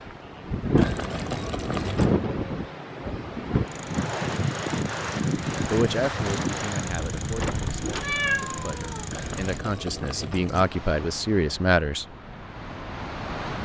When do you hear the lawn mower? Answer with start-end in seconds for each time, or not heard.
3.6-9.7.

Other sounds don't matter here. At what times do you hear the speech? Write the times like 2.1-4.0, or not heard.
5.7-12.1.